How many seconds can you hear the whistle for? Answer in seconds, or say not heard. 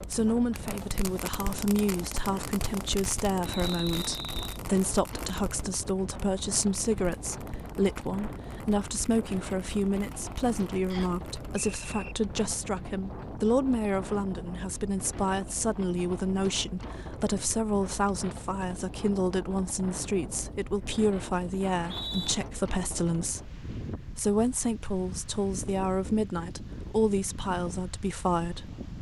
3 s.